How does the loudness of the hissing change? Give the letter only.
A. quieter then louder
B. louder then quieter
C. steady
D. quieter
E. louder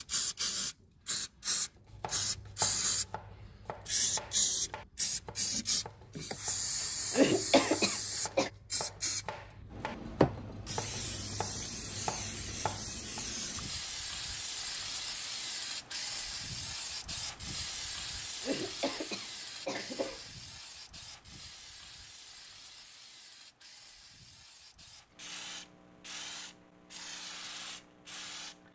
D.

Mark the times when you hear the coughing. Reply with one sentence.
You can hear the coughing from 7.1 to 8.5 s and from 18.4 to 20.2 s.